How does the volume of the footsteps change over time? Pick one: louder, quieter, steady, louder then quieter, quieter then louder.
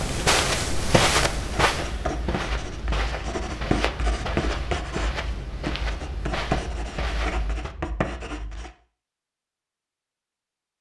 quieter.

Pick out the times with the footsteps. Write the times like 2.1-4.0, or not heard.
0.0-7.8.